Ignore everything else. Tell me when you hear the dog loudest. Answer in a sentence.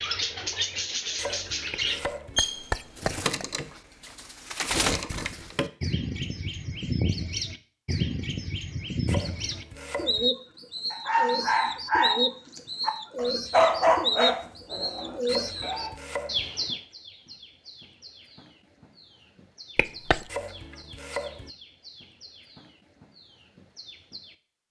The volume of the dog peaks at 14 seconds.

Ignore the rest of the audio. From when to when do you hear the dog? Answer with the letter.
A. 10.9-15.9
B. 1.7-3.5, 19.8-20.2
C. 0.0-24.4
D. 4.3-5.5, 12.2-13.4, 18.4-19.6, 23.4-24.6
A.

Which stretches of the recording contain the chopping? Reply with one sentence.
The chopping can be heard from 1.1 to 2.4 s, from 9.1 to 10.3 s, from 15.2 to 16.5 s and from 20.2 to 21.5 s.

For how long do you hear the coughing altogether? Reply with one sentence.
You can hear the coughing for 2 seconds altogether.